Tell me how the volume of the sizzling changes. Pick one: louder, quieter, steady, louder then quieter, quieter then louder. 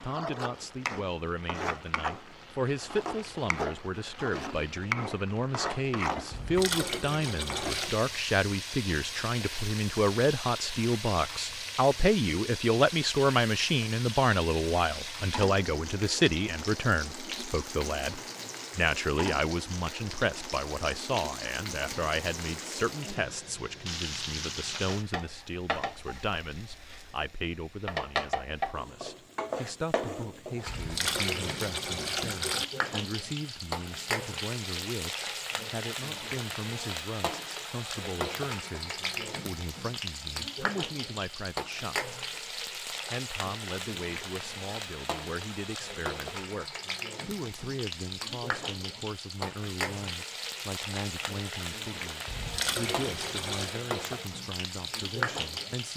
steady.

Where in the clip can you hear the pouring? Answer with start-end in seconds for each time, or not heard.
6.3-8.0, 30.6-32.6, 52.2-53.8.